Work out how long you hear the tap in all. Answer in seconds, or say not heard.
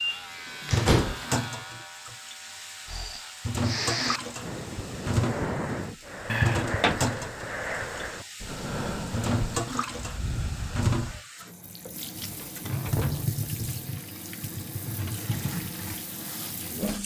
17 s.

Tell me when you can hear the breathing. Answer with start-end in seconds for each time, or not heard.
2.9-11.2.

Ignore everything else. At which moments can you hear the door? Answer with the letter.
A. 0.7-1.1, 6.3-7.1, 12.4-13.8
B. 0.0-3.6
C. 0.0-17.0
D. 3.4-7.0
A.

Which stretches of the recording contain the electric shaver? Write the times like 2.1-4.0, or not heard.
0.0-3.6.